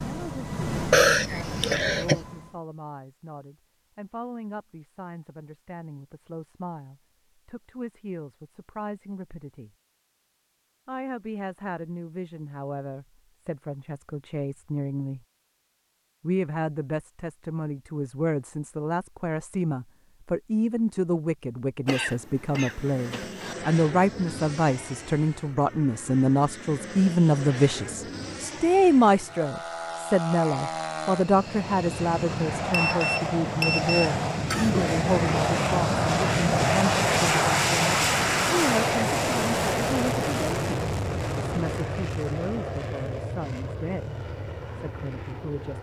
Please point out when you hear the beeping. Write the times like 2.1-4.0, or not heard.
32.7-34.1.